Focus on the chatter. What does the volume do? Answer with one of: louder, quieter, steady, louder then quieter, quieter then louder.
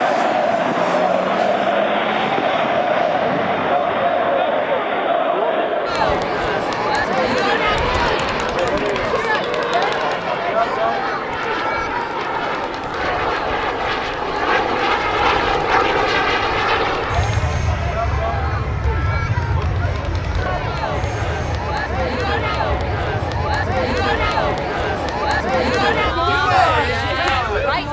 quieter then louder.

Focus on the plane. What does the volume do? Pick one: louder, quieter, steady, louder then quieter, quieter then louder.
louder then quieter.